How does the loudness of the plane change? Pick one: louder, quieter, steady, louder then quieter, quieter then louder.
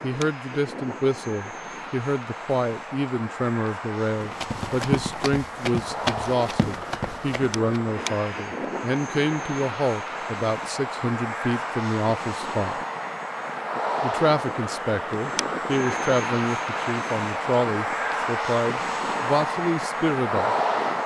louder.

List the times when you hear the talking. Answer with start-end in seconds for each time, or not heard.
0.0-12.8, 14.0-20.6.